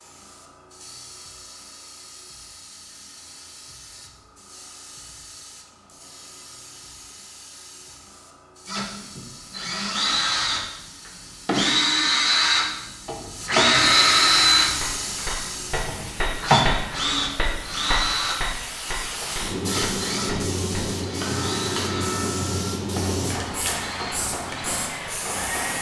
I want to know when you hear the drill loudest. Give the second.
14 s.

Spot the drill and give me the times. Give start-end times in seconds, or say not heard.
8.7-25.7.